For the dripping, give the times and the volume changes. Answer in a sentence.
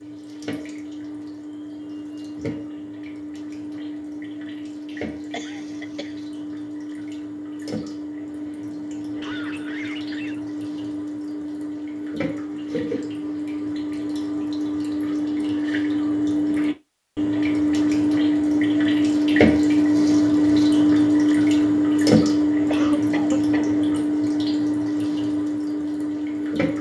The dripping can be heard from 0.0 to 26.7 s, getting louder.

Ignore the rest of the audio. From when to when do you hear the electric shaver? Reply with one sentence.
The electric shaver can't be heard in this clip.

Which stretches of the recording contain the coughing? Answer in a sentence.
The coughing can be heard from 5.0 to 6.2 s, from 9.2 to 10.4 s and from 22.6 to 23.6 s.